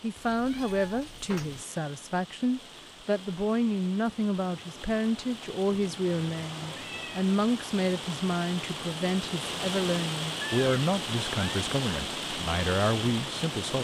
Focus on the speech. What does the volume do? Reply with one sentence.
The loudness of the speech stays about the same.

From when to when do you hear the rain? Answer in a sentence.
The rain can be heard from 0.0 to 13.7 s.